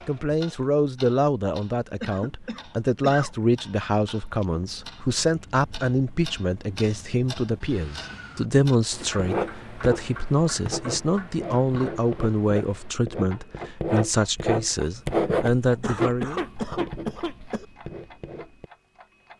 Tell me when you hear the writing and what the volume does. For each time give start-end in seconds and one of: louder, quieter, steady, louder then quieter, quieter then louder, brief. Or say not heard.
9.2-18.7 louder then quieter.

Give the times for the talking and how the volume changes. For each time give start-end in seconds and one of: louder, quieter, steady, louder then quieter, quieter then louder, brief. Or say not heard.
0.1-16.4 steady.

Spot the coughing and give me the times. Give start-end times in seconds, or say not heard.
2.0-3.3, 8.1-9.2, 15.7-17.6.